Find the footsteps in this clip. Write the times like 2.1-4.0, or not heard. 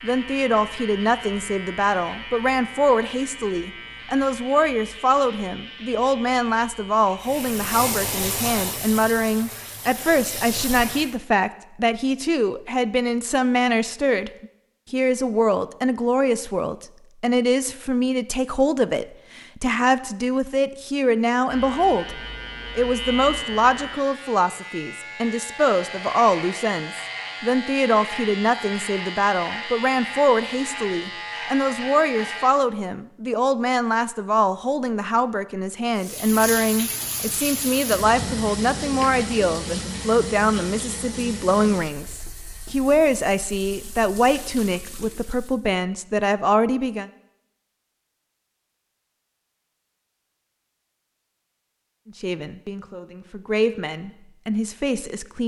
not heard.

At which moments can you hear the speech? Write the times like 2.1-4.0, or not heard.
0.0-47.1, 52.0-55.4.